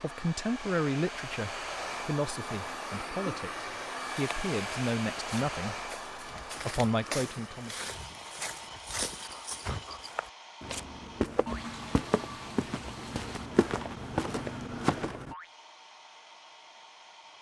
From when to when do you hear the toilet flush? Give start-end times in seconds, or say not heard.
11.4-13.5.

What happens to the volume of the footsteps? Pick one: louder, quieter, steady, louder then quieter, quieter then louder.
louder.